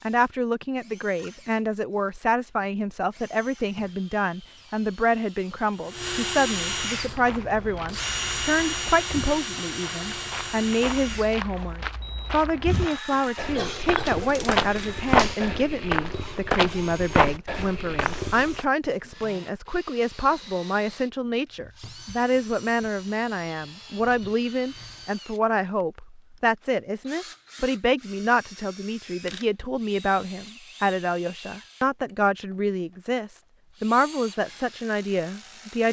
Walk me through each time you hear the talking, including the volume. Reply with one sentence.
You can hear the talking from 0.0 to 35.8 s, at a steady volume.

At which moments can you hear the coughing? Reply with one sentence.
The coughing can be heard from 13.1 to 14.2 s.